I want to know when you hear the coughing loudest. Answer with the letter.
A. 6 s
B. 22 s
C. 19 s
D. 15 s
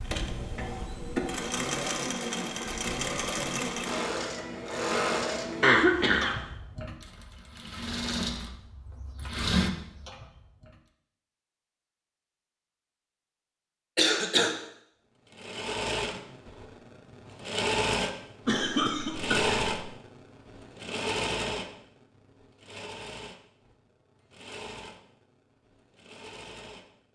A.